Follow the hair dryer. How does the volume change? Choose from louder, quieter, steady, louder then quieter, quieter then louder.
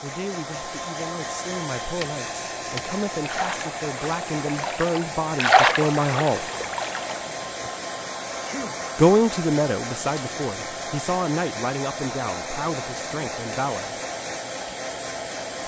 steady.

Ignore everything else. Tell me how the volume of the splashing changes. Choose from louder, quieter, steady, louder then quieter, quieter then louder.
louder then quieter.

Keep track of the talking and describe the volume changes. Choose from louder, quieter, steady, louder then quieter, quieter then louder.
louder then quieter.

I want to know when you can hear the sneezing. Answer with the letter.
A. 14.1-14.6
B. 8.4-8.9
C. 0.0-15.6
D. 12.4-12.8
B.